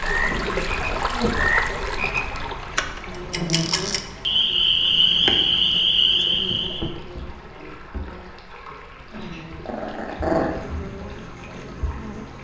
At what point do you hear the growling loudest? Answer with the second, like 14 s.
10 s.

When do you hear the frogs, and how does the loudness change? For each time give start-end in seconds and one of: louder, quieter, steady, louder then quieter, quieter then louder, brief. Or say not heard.
0.0-6.9 quieter then louder.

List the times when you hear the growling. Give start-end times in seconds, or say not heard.
0.3-0.8, 9.1-10.5.